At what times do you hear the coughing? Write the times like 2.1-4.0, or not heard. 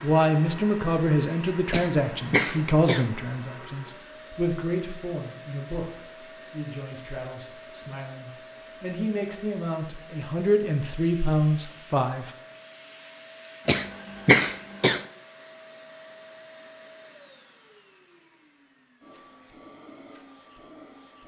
1.7-3.1, 13.7-15.1.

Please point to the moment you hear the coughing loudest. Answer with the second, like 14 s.
14 s.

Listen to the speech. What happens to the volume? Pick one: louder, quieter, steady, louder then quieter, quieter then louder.
quieter then louder.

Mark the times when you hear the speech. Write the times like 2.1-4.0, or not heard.
0.0-12.3.